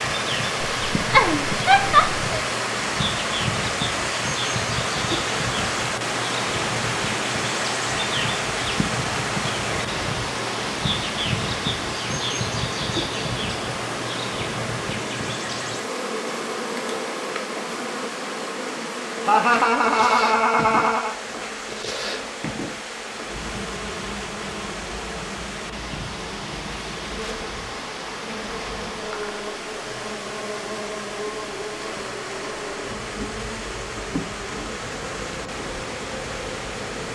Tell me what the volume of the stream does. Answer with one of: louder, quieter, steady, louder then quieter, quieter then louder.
quieter.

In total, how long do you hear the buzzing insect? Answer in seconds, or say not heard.
37 s.